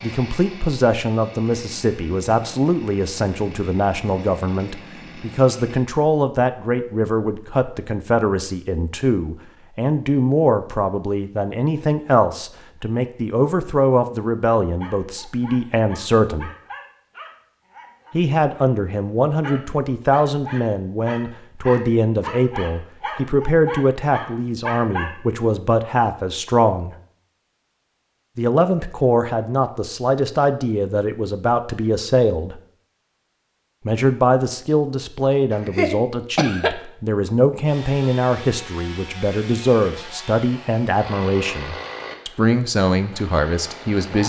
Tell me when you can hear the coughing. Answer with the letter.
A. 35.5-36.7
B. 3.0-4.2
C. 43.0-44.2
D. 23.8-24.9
A.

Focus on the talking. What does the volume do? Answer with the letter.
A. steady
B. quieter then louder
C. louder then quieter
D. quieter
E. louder
A.